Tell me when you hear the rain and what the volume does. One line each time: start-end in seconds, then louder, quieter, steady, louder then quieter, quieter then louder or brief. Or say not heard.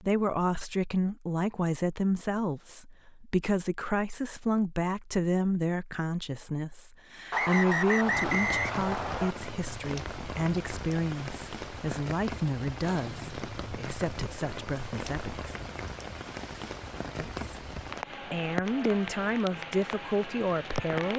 8.0-21.1 steady.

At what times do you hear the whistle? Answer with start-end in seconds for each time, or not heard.
7.3-9.3.